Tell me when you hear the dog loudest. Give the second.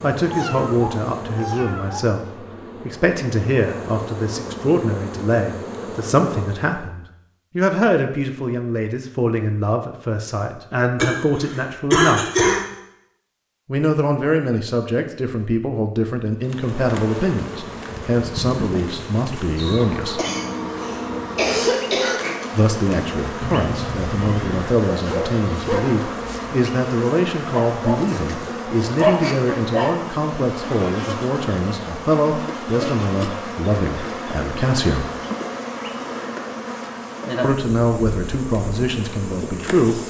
29 s.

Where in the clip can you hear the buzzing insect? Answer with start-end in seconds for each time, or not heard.
0.0-6.9, 16.4-40.0.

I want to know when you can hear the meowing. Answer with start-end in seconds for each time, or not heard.
0.3-2.0, 23.4-24.7.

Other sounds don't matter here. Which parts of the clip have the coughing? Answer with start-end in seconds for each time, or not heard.
10.9-12.6, 20.1-22.2.